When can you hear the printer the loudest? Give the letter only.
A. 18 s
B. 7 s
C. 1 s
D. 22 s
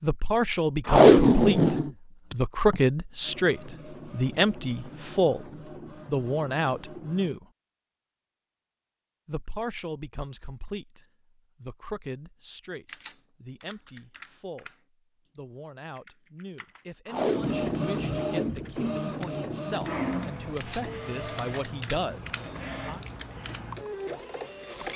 A.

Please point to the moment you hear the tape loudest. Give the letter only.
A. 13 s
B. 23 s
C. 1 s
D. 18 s
C.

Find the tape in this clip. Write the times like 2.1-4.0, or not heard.
0.8-2.8, 17.1-17.9.